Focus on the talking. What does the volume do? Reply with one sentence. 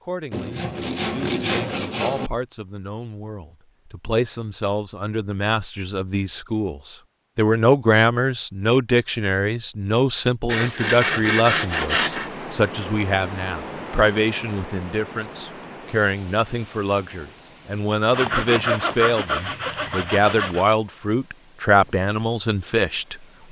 The volume of the talking goes up.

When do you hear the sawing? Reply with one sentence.
The sawing can be heard from 0.3 to 2.3 s, from 10.4 to 12.3 s and from 18.1 to 20.6 s.